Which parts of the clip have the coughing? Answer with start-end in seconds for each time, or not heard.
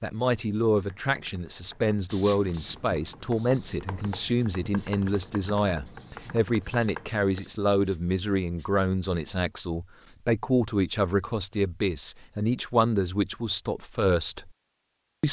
not heard.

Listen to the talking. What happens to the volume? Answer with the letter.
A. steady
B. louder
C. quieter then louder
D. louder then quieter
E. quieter
A.